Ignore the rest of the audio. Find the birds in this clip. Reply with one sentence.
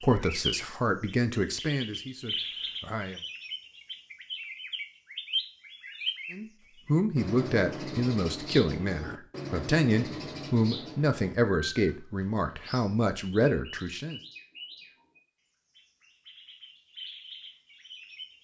The birds can be heard from 0.0 to 18.4 s.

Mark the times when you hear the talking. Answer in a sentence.
You can hear the talking from 0.0 to 3.2 s and from 6.3 to 14.2 s.